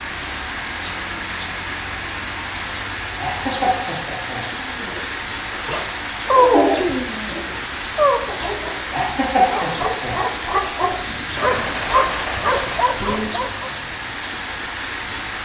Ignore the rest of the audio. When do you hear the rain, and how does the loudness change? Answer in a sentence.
The rain can be heard from 0.0 to 15.4 s, at a steady volume.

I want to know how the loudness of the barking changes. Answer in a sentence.
The loudness of the barking goes down, then up.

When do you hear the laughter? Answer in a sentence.
The laughter can be heard from 3.2 to 4.4 s and from 8.9 to 10.2 s.